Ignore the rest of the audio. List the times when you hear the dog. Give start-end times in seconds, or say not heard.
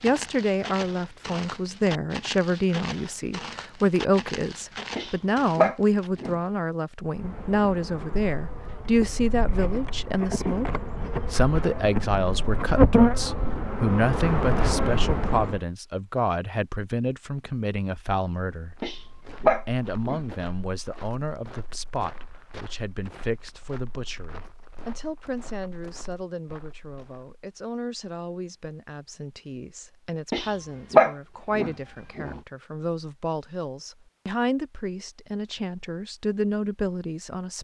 5.0-6.3, 18.8-20.2, 30.3-32.4.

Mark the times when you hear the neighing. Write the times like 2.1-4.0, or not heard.
not heard.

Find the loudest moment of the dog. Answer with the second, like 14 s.
31 s.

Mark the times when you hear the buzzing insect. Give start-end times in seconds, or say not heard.
7.1-15.6.